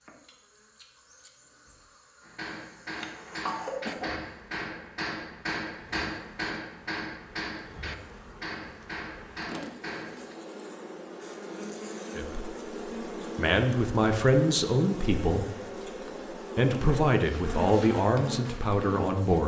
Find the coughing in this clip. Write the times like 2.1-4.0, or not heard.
3.0-4.2.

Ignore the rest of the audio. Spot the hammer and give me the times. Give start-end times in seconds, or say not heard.
2.2-10.3.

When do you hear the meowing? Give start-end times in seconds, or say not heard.
not heard.